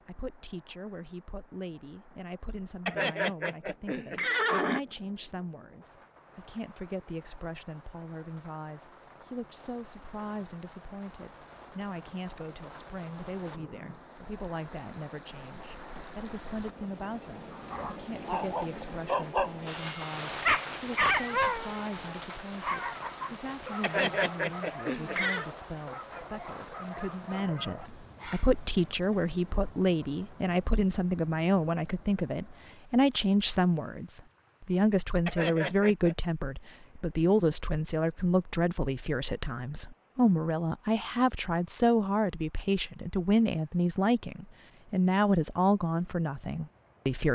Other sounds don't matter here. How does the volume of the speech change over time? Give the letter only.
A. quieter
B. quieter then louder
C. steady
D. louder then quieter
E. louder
E.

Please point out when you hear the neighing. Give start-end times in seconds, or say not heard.
2.9-4.8, 23.8-25.4, 35.2-36.1.